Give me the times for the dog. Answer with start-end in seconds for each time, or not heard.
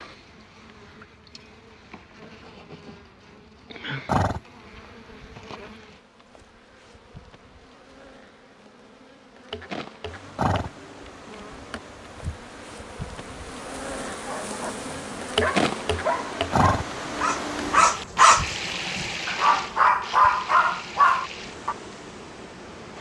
13.9-21.8.